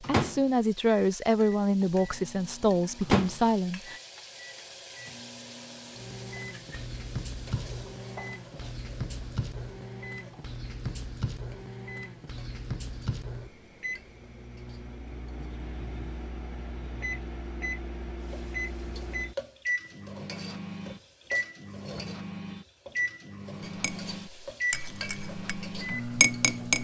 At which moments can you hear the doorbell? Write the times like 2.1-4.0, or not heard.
not heard.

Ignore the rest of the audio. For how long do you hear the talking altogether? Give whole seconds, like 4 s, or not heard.
4 s.